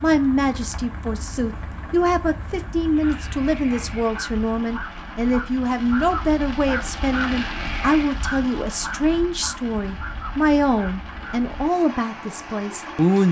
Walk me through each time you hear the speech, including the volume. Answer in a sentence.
The speech can be heard from 0.0 to 13.2 s, at a steady volume.